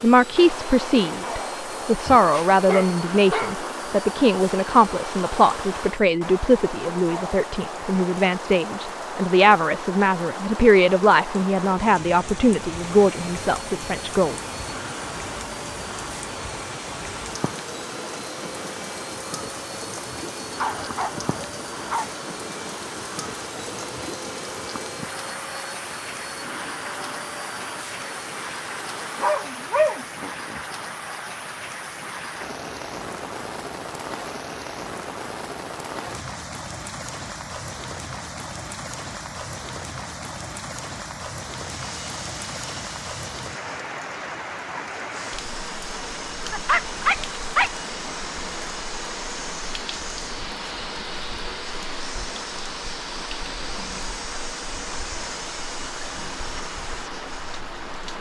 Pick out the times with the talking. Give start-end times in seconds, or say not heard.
0.0-14.3.